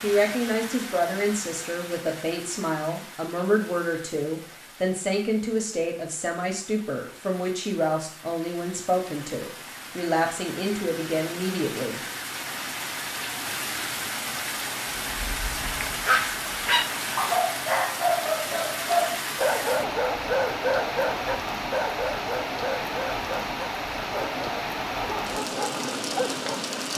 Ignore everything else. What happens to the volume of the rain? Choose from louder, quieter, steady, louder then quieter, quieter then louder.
louder.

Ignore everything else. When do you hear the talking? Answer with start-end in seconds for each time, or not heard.
0.0-12.0.